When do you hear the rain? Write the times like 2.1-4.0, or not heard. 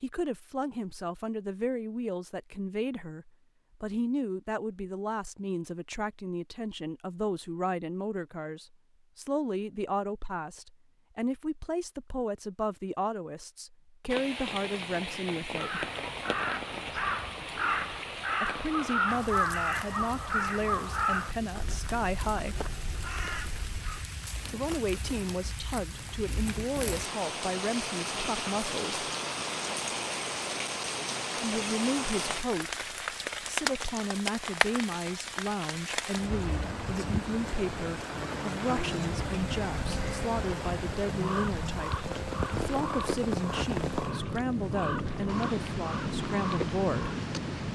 14.1-47.7.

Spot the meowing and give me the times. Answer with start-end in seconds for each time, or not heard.
not heard.